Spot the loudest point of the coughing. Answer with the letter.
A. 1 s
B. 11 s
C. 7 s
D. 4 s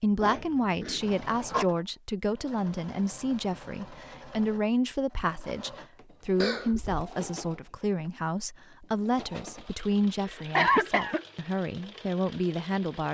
B.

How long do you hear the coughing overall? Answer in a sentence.
The coughing can be heard for 3 seconds in total.